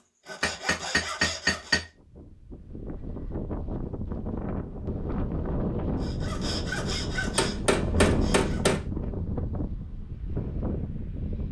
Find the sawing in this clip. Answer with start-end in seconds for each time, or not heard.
0.2-1.8, 6.0-8.8.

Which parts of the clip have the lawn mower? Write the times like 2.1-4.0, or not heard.
not heard.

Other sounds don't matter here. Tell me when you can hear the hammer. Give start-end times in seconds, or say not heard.
0.4-1.9, 7.3-8.8.